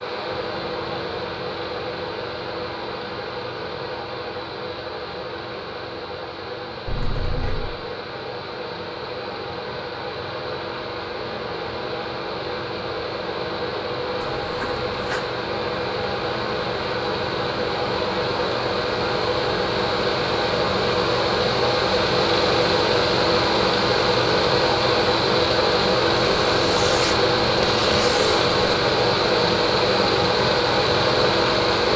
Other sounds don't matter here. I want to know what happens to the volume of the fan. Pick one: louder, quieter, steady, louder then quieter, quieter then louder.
louder.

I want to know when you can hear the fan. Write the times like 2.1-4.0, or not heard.
0.0-31.9.